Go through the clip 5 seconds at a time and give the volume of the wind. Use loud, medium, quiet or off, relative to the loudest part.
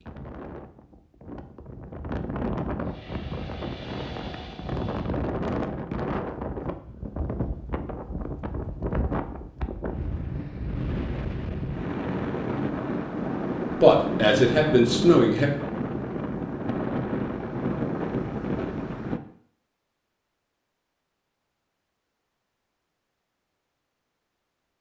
medium, loud, loud, loud, off.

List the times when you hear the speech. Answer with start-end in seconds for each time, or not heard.
13.8-15.5.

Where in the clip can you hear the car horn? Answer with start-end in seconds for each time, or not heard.
not heard.